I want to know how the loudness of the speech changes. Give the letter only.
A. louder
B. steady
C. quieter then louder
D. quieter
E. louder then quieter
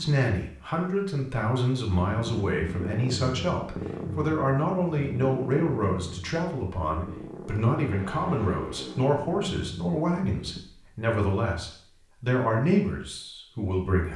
B.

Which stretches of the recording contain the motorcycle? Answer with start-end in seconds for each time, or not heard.
1.9-10.6.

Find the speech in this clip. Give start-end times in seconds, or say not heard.
0.0-14.1.